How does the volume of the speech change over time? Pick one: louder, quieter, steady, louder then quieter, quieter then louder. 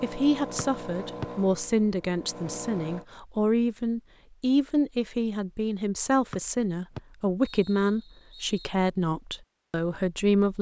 steady.